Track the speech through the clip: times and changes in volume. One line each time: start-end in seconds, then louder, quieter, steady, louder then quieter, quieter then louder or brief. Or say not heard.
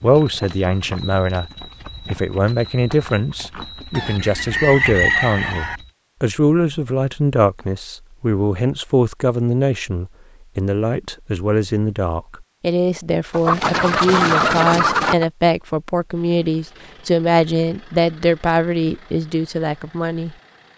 0.0-20.4 steady.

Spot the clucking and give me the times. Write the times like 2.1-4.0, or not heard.
4.0-5.8, 13.3-15.2.